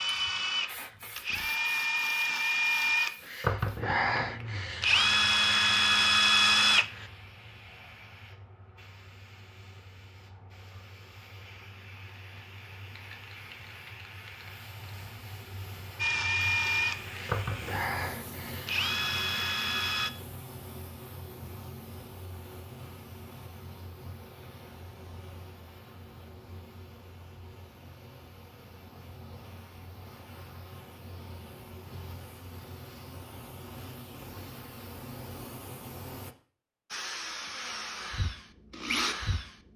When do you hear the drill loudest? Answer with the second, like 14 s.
6 s.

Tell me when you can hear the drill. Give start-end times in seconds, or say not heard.
0.0-7.0, 15.9-20.1, 36.9-39.6.